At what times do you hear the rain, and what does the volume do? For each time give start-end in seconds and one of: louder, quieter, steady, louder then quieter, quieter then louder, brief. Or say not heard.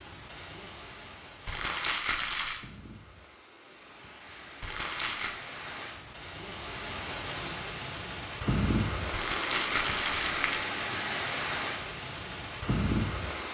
0.0-13.4 louder.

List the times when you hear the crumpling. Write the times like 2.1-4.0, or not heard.
1.4-2.6, 4.6-5.3, 9.1-10.7.